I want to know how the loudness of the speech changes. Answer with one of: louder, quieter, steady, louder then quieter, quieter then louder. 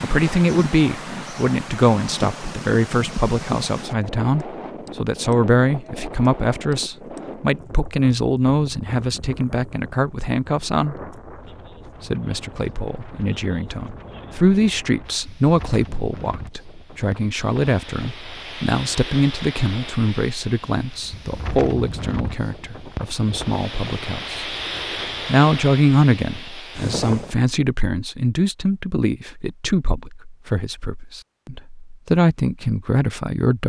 steady.